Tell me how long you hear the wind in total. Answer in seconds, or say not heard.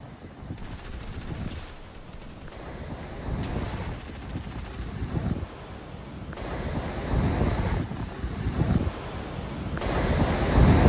11 s.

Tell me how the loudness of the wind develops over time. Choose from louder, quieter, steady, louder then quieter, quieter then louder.
louder.